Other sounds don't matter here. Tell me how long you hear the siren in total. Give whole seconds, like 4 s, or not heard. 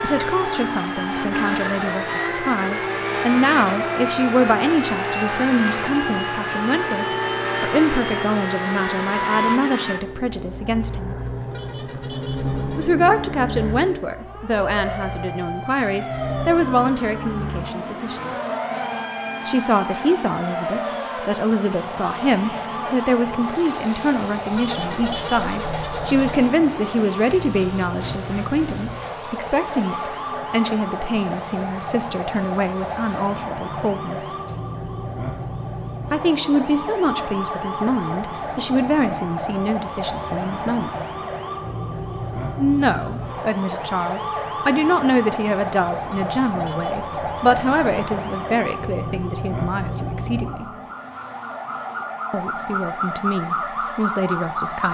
55 s.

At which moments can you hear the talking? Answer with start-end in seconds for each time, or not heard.
0.0-11.2, 12.8-18.3, 19.4-34.4, 36.1-40.9, 42.5-50.6, 52.3-54.8.